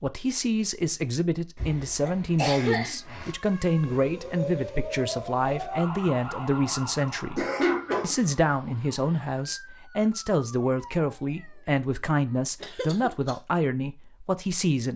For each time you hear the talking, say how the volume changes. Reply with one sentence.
The talking can be heard from 0.0 to 14.9 s, at a steady volume.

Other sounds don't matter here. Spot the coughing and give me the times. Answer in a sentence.
You can hear the coughing from 1.6 to 3.4 s, from 7.3 to 8.2 s and from 12.6 to 13.3 s.